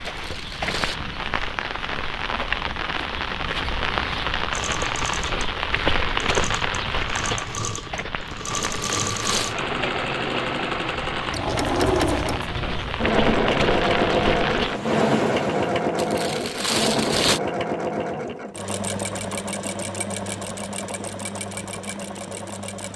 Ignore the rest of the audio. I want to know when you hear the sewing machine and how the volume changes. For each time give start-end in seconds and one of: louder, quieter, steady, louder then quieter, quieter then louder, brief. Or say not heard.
4.5-22.9 louder then quieter.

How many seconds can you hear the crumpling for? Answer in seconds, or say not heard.
3 s.